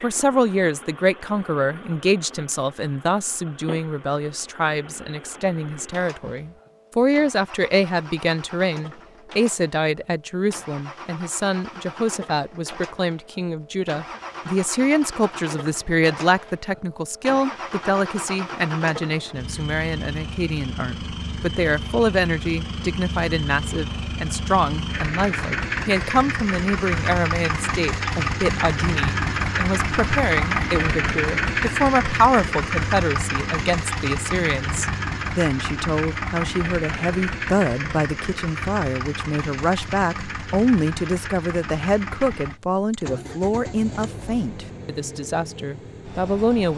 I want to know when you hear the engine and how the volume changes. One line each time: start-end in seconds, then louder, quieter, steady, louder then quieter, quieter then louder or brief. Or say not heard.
0.0-46.7 louder then quieter.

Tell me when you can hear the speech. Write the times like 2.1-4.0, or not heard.
0.0-46.7.